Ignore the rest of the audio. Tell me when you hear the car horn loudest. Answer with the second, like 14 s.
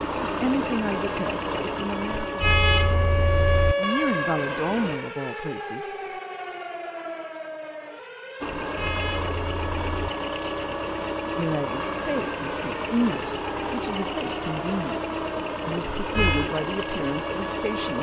3 s.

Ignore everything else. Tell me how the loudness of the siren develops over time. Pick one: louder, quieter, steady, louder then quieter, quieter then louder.
quieter.